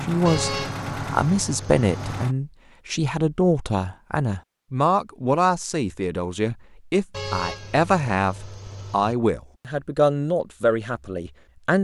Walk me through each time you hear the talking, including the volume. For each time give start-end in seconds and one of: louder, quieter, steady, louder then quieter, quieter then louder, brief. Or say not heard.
0.0-11.7 steady.